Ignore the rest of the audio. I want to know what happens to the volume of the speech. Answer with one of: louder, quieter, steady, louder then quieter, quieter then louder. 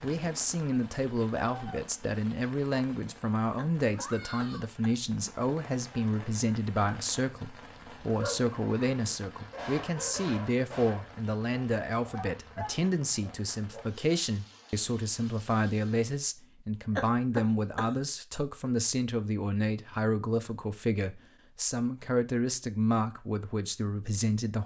steady.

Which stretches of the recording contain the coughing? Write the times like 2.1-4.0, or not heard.
3.5-5.0, 16.9-17.9.